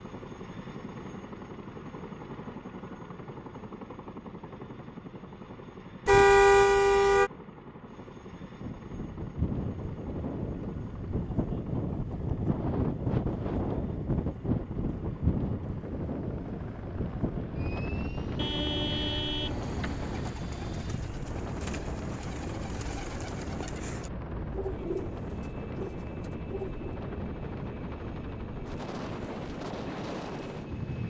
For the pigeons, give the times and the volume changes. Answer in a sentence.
You can hear the pigeons from 19.4 to 26.9 s, getting louder then quieter.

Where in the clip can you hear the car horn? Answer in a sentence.
The car horn can be heard from 6.0 to 7.3 s and from 18.4 to 20.3 s.